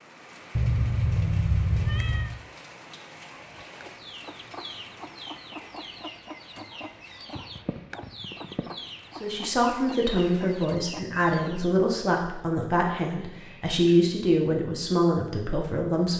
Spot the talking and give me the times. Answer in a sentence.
The talking can be heard from 9.2 to 16.1 s.